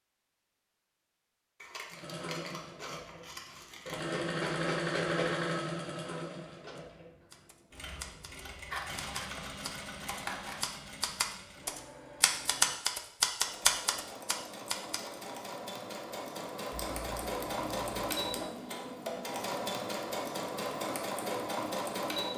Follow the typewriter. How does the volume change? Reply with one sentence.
The volume of the typewriter goes up.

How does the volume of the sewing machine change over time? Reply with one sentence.
The loudness of the sewing machine goes down, then up.